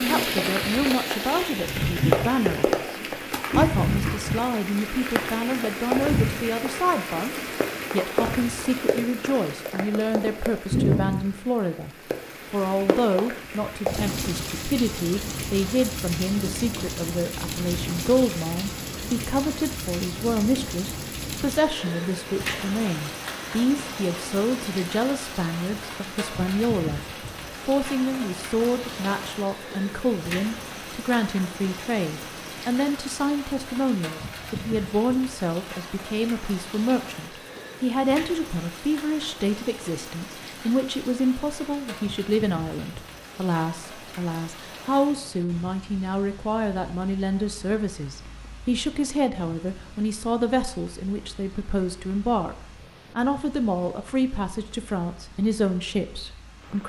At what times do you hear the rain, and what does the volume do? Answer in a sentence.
You can hear the rain from 0.0 to 56.8 s, getting quieter.